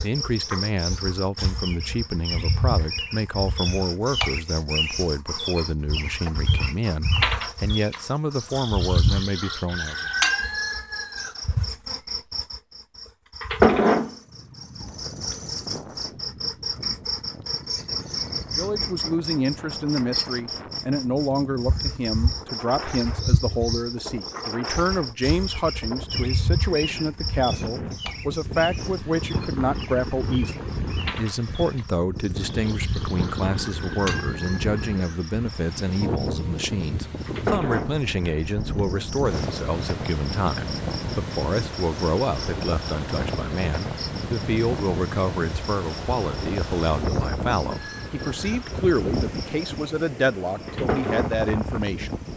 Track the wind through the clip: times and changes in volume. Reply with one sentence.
You can hear the wind from 14.2 to 52.3 s, getting louder.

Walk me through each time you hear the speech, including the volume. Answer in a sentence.
The speech can be heard from 0.0 to 10.1 s, at a steady volume; and from 18.6 to 52.1 s, at a steady volume.